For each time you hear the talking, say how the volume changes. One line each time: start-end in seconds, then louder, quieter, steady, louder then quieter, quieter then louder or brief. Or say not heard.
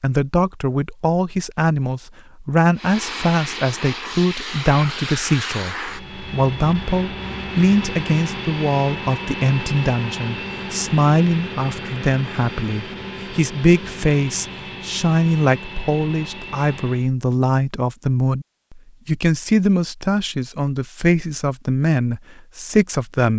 0.0-23.3 steady.